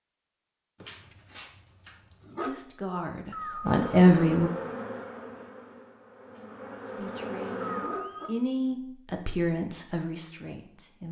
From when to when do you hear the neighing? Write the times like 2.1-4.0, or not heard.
3.3-3.9, 7.6-8.3.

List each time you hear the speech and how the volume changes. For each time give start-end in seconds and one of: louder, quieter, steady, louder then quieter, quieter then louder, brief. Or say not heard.
2.5-4.5 brief
7.0-11.0 louder then quieter.